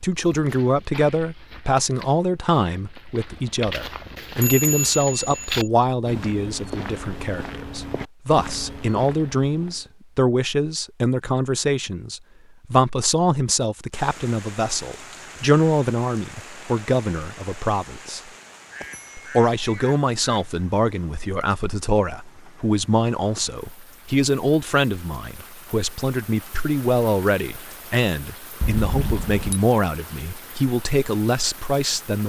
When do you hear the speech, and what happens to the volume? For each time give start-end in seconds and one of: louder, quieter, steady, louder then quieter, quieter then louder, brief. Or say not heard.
0.0-18.2 steady
19.1-32.2 steady.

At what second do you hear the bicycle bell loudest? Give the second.
5 s.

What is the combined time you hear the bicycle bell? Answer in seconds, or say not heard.
3 s.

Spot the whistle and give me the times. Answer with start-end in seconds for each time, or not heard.
not heard.